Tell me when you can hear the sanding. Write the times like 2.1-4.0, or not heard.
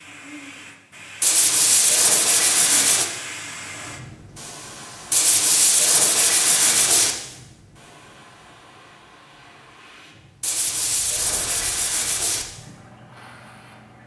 1.2-3.0, 5.1-7.2, 10.4-12.4.